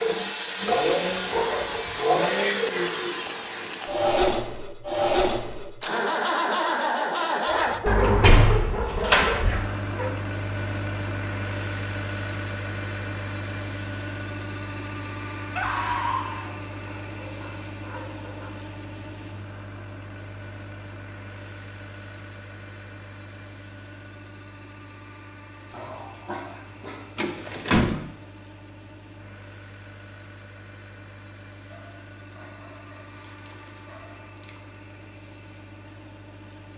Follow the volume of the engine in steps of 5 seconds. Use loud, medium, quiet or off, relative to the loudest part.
loud, loud, medium, quiet, quiet, quiet, quiet, quiet.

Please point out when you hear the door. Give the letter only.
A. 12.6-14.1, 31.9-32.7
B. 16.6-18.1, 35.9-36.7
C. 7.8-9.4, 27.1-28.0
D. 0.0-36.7
C.